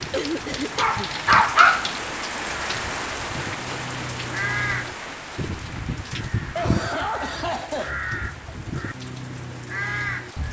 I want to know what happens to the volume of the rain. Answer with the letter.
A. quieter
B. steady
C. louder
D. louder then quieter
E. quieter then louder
A.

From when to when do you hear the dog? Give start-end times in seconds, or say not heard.
0.0-2.0.